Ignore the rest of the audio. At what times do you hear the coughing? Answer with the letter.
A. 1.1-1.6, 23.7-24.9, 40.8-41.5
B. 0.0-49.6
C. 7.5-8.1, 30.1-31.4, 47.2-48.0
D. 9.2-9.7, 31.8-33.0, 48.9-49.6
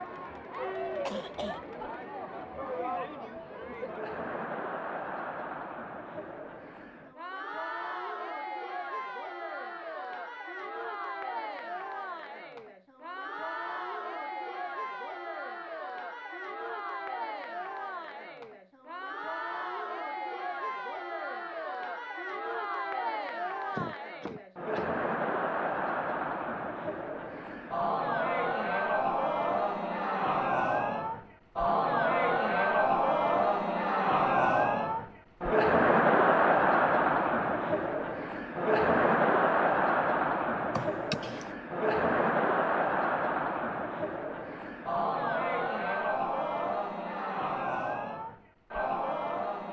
A.